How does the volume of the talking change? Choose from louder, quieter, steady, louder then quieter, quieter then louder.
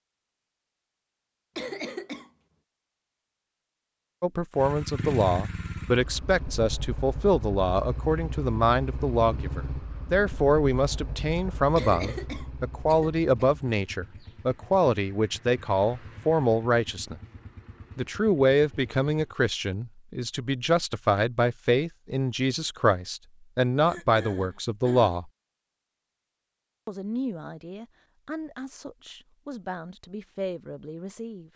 quieter.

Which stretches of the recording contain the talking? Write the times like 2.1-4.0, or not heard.
4.2-17.2, 17.9-25.3, 26.9-31.5.